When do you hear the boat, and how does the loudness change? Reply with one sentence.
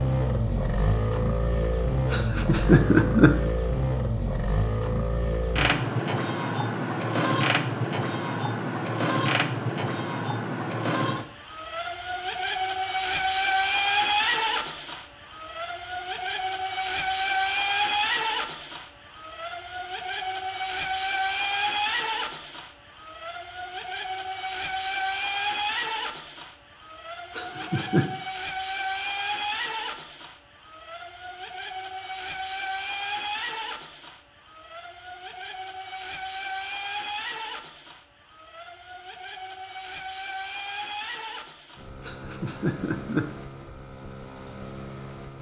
The boat can be heard from 0.0 to 45.3 s, getting quieter.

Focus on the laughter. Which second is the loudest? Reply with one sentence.
The loudest moment of the laughter is at 3 seconds.